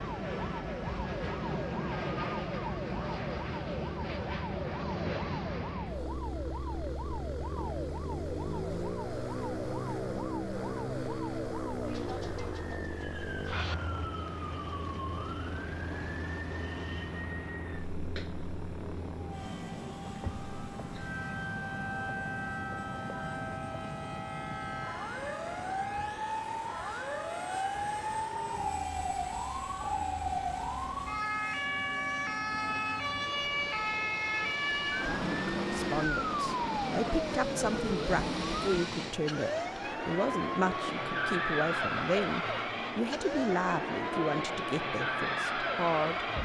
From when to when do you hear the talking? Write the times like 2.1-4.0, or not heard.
35.1-46.2.